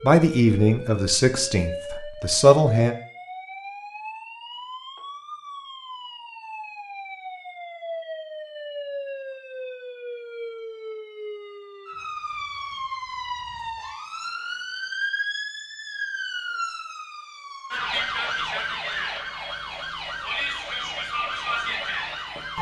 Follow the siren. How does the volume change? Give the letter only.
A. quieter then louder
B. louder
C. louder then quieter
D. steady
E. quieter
B.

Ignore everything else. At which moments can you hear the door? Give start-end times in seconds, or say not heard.
not heard.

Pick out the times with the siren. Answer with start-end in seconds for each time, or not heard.
0.0-22.5.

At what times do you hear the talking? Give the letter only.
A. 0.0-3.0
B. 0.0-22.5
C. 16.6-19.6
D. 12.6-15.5
A.